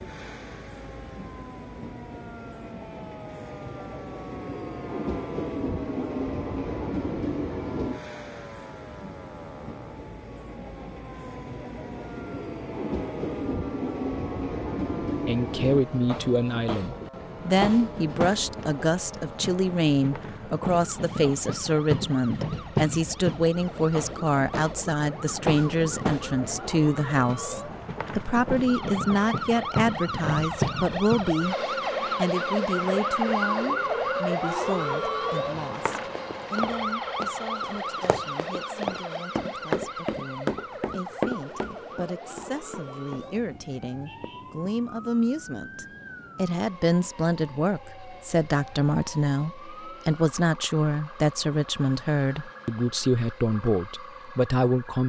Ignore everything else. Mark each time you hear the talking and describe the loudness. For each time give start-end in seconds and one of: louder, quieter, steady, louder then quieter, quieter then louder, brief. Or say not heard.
15.2-31.6 steady
32.1-55.0 quieter then louder.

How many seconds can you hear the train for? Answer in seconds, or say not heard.
55 s.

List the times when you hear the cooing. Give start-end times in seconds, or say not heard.
not heard.